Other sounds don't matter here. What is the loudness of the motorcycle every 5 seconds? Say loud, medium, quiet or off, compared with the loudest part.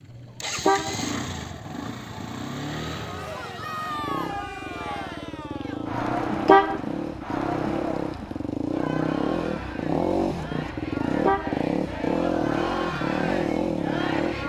medium, loud, loud.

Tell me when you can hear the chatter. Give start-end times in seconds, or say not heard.
2.9-14.4.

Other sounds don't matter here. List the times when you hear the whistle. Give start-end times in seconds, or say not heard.
not heard.